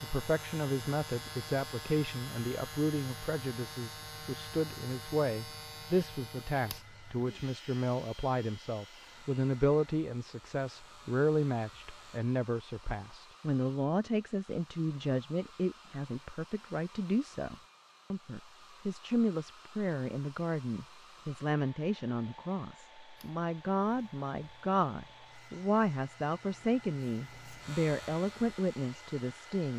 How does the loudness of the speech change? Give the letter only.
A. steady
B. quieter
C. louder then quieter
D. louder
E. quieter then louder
A.